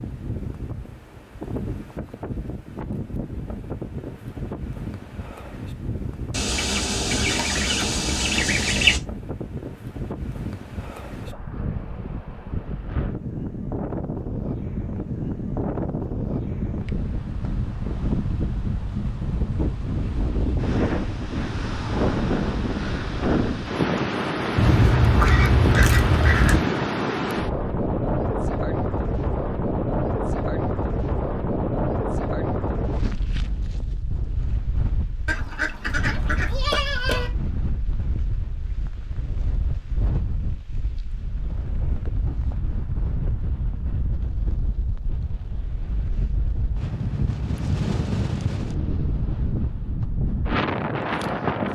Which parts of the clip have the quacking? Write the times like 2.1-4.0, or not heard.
6.3-9.0, 24.6-26.6, 35.2-37.3.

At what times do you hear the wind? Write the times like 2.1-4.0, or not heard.
0.0-51.7.